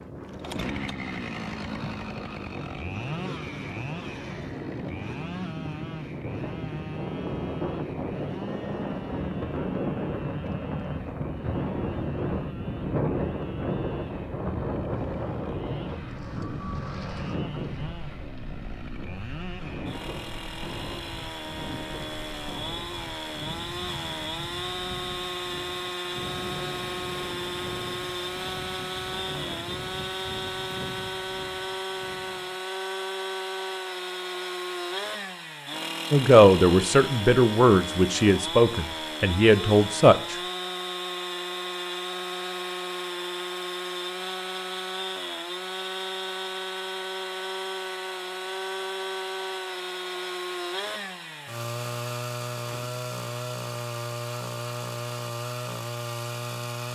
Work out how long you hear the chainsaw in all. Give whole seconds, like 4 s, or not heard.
57 s.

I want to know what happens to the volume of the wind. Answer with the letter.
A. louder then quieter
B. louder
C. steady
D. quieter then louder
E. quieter
A.